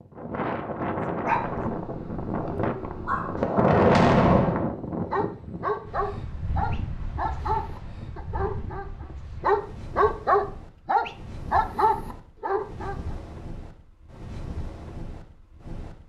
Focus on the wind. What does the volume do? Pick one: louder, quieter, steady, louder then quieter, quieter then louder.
quieter.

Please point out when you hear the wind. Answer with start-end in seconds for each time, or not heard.
0.0-16.0.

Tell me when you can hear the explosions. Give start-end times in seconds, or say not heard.
3.4-4.7.